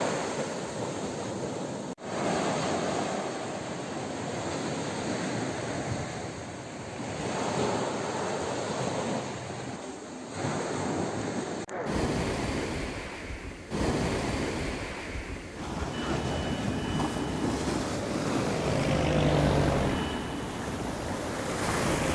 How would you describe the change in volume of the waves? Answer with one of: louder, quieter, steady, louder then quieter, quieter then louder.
steady.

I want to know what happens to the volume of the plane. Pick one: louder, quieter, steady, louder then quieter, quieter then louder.
louder then quieter.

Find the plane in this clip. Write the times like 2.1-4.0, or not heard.
15.9-22.1.